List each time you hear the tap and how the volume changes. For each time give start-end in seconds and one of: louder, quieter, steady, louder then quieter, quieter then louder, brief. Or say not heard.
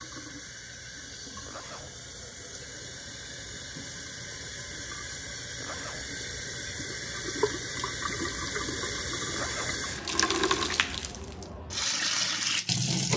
0.0-13.1 louder.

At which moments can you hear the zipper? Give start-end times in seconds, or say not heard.
1.4-1.9, 5.6-6.1, 9.3-9.8.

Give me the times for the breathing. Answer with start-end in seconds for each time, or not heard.
not heard.